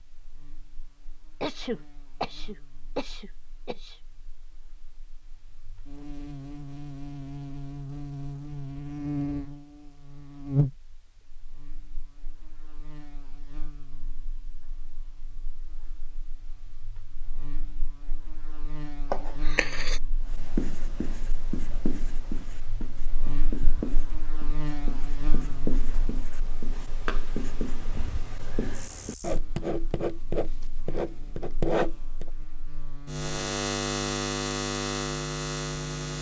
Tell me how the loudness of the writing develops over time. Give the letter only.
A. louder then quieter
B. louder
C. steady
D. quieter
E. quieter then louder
B.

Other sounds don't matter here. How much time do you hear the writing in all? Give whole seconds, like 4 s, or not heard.
12 s.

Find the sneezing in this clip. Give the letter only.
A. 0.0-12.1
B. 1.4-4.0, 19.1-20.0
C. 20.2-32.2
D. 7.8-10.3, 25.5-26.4
B.